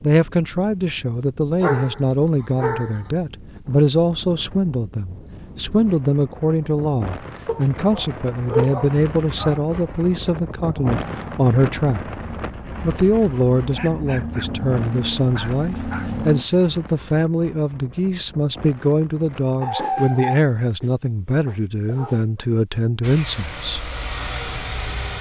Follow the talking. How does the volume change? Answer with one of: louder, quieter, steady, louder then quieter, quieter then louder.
steady.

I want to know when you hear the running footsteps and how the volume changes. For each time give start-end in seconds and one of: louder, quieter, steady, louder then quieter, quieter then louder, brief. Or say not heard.
not heard.